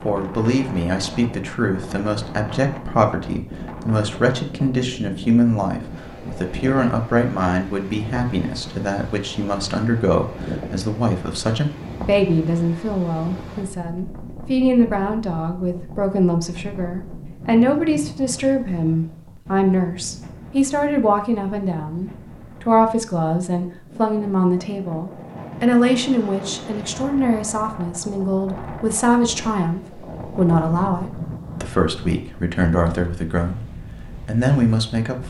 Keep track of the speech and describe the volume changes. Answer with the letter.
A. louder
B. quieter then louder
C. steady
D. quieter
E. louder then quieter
C.